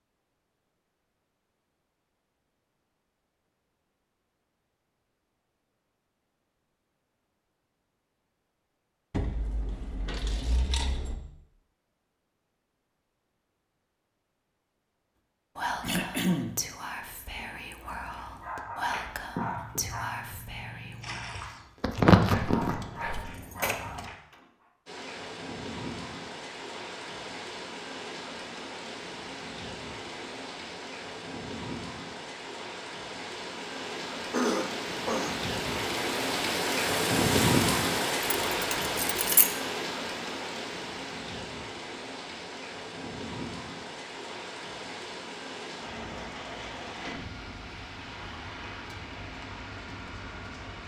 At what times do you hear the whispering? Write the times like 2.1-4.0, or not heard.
15.6-23.2.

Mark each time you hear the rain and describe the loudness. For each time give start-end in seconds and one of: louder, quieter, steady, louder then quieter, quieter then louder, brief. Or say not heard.
24.9-50.8 louder then quieter.